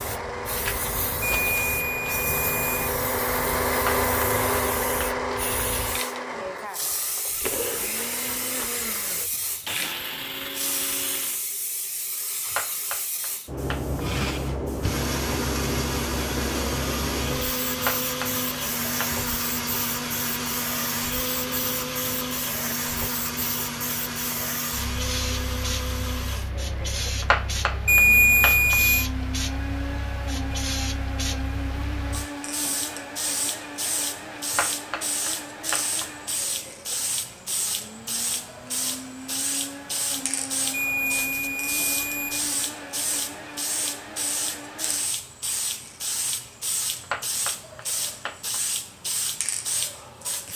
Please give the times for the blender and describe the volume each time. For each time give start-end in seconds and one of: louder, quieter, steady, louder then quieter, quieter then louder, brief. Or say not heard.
0.0-11.4 louder then quieter
14.0-45.1 quieter.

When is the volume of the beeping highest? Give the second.
28 s.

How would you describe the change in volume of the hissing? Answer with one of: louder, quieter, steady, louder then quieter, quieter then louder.
steady.